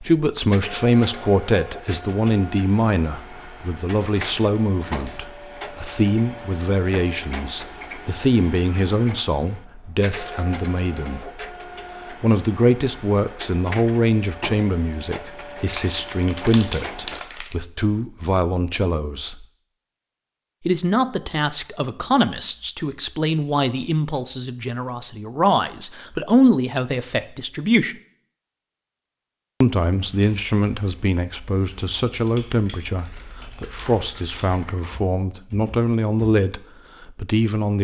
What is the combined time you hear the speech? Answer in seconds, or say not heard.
34 s.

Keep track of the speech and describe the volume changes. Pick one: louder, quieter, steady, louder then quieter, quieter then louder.
steady.